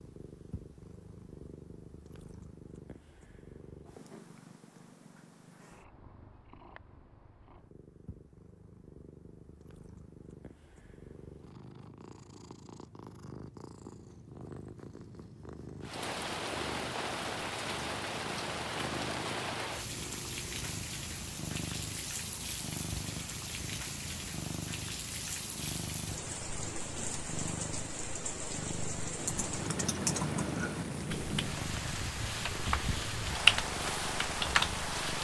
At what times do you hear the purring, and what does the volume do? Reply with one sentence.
The purring can be heard from 0.0 to 35.1 s, getting louder.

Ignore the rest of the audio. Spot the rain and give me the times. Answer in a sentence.
You can hear the rain from 15.8 to 35.1 s.